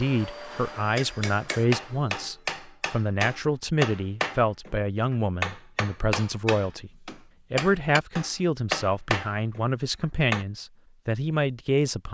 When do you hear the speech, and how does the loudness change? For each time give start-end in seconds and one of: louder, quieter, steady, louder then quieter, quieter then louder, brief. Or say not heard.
0.0-12.1 steady.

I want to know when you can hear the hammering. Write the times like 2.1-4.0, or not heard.
0.8-10.4.